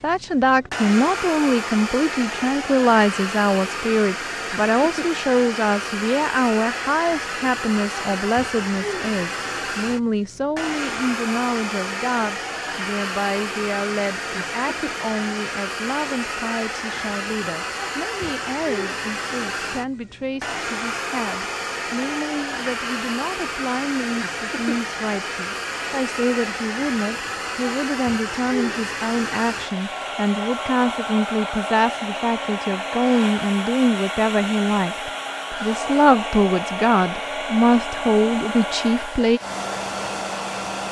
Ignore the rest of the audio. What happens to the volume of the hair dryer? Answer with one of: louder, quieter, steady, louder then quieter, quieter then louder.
steady.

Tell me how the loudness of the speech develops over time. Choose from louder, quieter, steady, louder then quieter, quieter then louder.
quieter then louder.